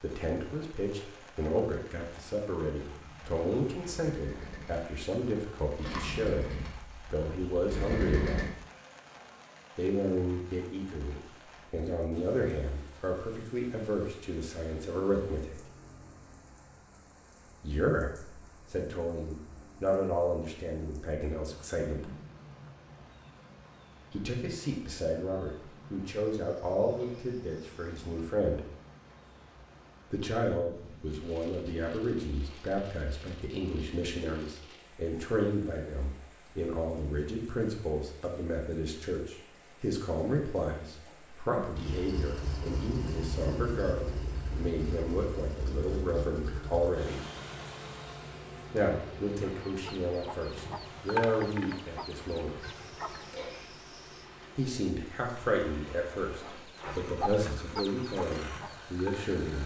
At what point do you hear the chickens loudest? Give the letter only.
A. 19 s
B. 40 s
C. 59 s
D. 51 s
D.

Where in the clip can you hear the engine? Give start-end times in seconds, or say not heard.
2.8-8.5, 41.8-59.6.